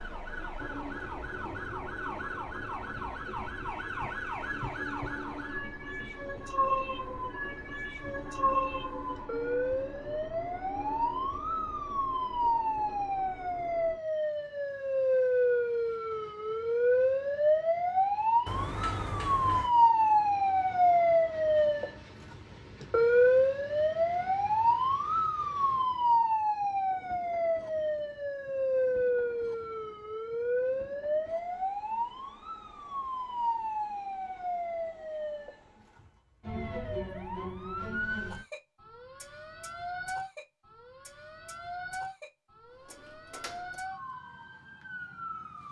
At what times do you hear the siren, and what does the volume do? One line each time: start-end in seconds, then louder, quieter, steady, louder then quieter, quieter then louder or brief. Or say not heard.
0.0-45.6 louder then quieter.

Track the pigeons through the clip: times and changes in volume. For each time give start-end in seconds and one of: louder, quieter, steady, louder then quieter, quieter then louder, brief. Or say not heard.
not heard.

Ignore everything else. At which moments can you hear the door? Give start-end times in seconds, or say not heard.
18.4-19.8, 42.6-43.8.